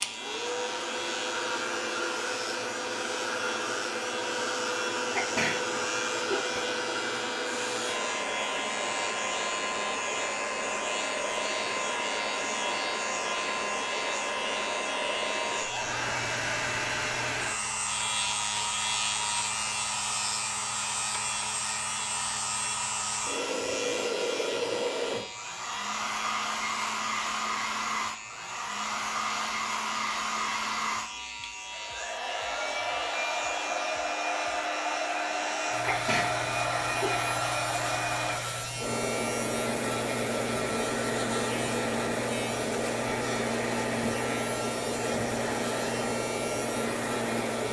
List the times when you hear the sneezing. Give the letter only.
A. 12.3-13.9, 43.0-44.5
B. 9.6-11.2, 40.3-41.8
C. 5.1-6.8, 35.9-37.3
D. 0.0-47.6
C.